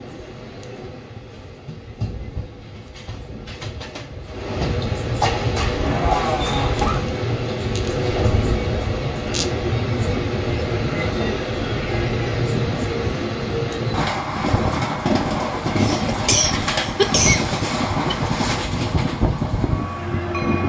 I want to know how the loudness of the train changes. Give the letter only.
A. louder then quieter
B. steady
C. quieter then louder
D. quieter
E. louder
E.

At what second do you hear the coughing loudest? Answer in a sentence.
The volume of the coughing peaks at 17 seconds.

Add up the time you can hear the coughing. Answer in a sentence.
You can hear the coughing for 4 seconds altogether.